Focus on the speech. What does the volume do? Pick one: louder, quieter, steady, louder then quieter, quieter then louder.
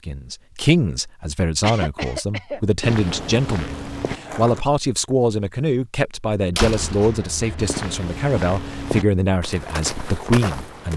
steady.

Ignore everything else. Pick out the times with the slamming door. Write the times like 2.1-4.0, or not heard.
6.5-7.8.